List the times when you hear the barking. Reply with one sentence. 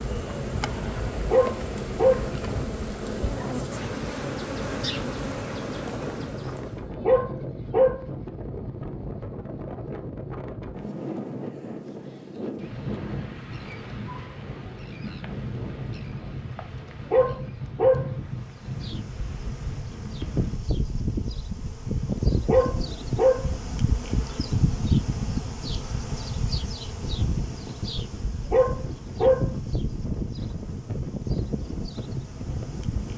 The barking can be heard from 1.1 to 2.3 s, from 6.9 to 8.1 s, from 16.9 to 18.1 s, from 22.4 to 23.5 s and from 28.4 to 29.5 s.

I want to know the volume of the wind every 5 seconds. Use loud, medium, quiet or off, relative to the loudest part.
loud, loud, loud, loud, medium, loud, loud.